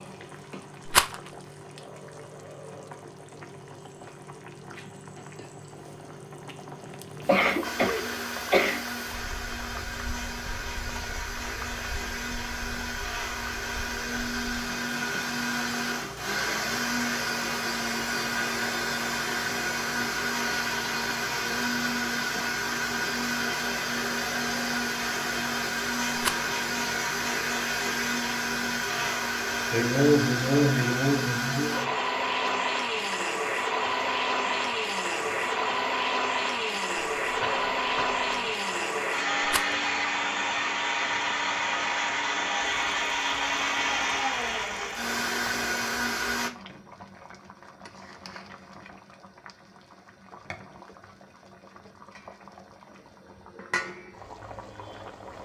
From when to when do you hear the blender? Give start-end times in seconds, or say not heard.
7.6-46.5.